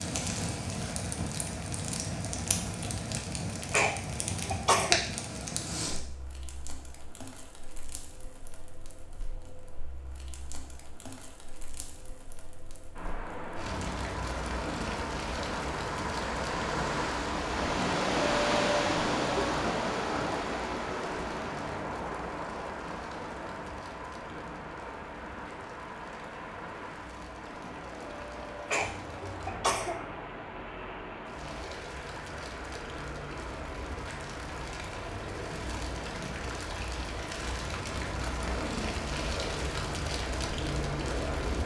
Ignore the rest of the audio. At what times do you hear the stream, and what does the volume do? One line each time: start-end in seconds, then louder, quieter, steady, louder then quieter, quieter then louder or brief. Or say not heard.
12.9-41.6 quieter.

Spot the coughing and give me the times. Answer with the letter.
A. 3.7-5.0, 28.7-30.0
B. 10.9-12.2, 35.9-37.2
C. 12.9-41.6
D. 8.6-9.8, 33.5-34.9
A.